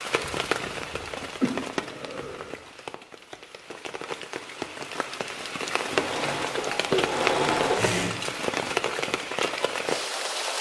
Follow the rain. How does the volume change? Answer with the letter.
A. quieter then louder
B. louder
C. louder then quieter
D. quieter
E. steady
A.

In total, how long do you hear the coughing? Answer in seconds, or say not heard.
4 s.